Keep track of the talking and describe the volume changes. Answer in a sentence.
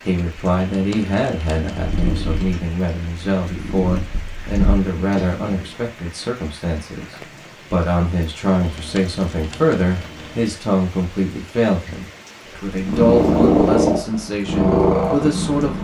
The loudness of the talking stays about the same.